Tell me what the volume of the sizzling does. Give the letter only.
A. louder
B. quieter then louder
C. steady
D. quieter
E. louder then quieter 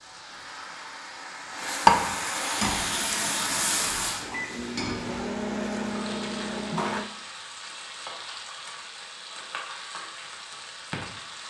D.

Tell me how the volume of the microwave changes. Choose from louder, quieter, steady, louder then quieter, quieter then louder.
louder.